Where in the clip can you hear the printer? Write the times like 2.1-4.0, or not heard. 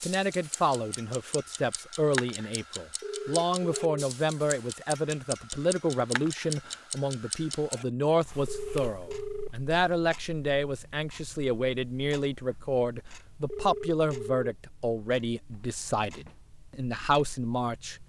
not heard.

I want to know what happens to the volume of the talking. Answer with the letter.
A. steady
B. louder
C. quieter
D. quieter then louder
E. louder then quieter
A.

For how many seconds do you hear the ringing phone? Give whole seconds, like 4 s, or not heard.
3 s.